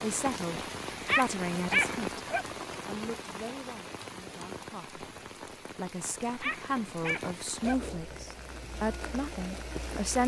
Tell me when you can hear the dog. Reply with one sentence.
The dog can be heard from 0.9 to 2.5 s and from 6.2 to 7.8 s.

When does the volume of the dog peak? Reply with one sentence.
The loudest moment of the dog is at 2 seconds.